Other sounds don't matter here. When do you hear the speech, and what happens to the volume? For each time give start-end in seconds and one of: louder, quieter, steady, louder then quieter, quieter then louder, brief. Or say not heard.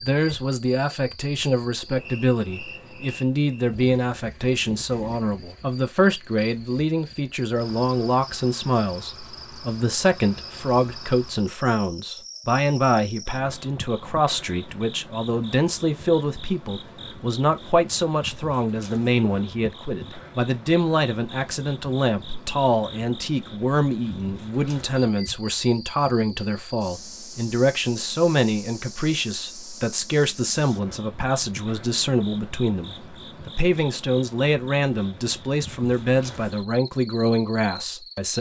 0.0-38.3 steady.